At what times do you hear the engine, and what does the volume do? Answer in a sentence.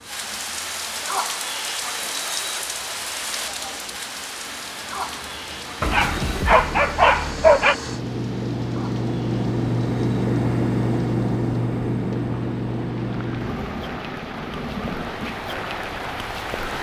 The engine can be heard from 0.0 to 16.6 s, getting louder then quieter.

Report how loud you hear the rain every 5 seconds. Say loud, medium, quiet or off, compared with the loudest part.
loud, medium, medium, loud.